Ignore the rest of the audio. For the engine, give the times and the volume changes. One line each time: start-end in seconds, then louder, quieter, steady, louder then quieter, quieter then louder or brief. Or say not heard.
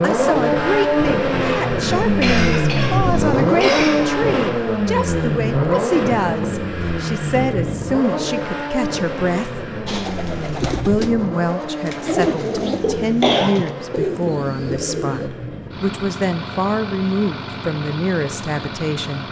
0.0-19.2 quieter.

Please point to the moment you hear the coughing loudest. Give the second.
13 s.